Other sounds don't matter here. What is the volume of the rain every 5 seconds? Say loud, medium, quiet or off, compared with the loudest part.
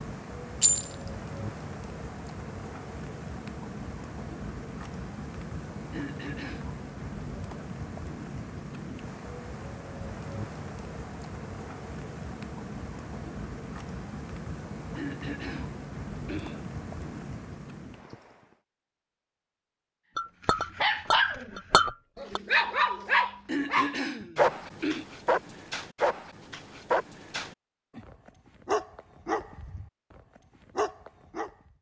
loud, loud, loud, loud, off, off, off.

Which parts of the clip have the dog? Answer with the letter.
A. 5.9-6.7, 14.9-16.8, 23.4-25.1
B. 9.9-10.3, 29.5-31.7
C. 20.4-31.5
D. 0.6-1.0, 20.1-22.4
C.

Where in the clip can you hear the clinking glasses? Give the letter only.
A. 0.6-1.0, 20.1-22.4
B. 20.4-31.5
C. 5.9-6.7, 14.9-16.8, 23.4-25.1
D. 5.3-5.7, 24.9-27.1
A.